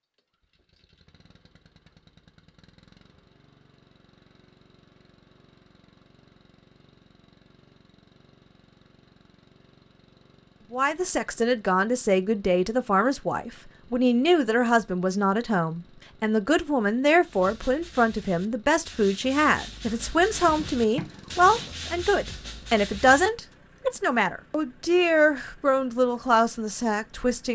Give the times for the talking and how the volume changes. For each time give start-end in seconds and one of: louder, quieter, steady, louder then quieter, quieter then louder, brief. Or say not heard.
10.7-27.5 steady.